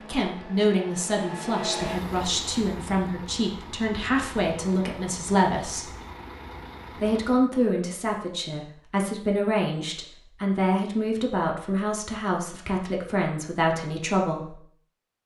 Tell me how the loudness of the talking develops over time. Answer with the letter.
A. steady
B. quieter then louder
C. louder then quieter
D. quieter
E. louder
A.